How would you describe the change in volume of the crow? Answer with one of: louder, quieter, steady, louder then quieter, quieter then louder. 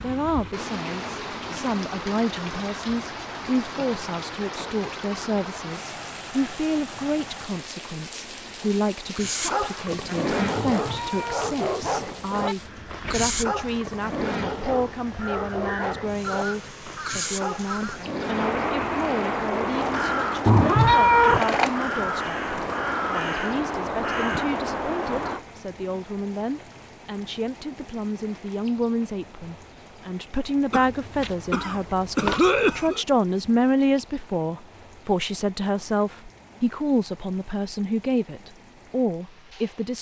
louder.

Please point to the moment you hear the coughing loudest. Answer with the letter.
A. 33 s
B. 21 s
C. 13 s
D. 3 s
A.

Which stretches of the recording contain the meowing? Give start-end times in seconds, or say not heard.
10.6-12.6, 20.4-21.4.